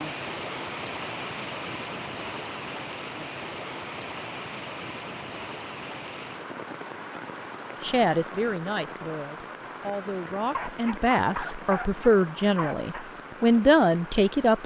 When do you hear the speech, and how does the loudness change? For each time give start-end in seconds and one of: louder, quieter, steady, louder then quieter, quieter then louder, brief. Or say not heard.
7.8-14.6 louder.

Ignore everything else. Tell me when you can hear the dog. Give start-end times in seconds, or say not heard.
10.2-13.1.